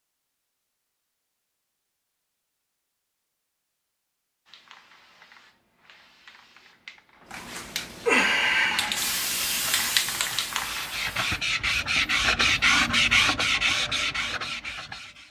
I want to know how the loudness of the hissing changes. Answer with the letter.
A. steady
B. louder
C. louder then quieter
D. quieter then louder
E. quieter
C.